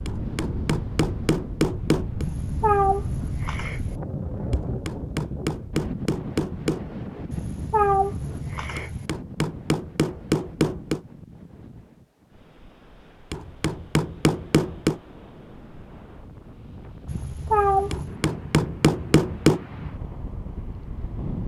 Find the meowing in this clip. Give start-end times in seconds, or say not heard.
2.2-4.0, 7.3-9.1, 17.1-18.1.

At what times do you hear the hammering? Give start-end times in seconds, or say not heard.
0.1-2.2, 4.5-6.8, 8.8-11.0, 13.3-15.0, 17.9-19.6.